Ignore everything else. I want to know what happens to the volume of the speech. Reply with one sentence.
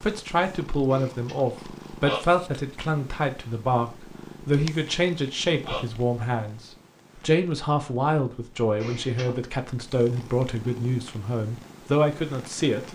The volume of the speech stays about the same.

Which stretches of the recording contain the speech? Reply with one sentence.
You can hear the speech from 0.0 to 12.8 s.